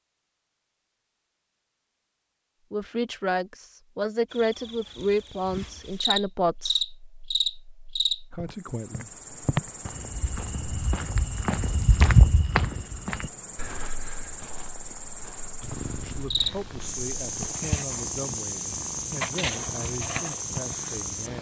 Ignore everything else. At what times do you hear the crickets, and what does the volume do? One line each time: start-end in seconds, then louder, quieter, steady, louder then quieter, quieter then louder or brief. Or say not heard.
4.3-21.3 quieter then louder.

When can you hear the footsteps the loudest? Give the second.
12 s.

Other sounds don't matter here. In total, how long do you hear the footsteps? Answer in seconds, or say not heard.
9 s.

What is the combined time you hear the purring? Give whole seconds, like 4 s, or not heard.
6 s.